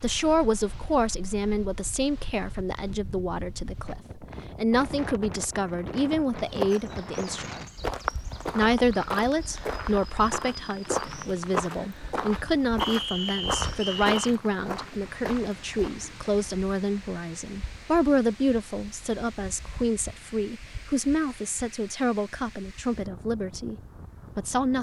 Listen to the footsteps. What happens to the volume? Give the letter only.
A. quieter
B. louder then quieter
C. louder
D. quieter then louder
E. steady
E.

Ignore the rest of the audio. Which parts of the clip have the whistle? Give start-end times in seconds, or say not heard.
12.8-14.2.